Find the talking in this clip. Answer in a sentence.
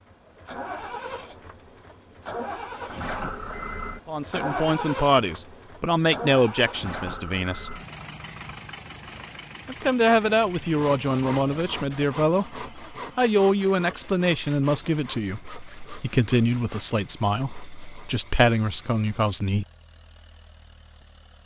You can hear the talking from 4.0 to 7.8 s and from 9.7 to 19.6 s.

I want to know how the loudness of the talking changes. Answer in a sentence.
The volume of the talking stays about the same.